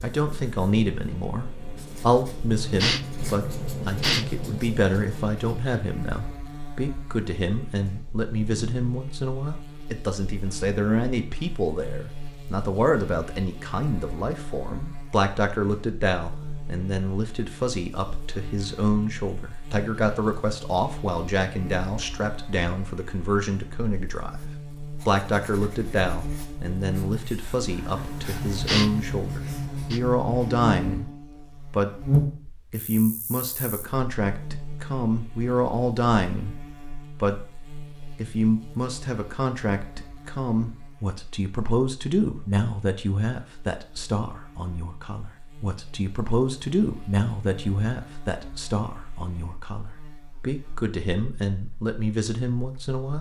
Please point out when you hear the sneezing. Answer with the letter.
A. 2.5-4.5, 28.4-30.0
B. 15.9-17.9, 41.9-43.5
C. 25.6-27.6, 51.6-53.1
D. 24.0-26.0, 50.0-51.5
A.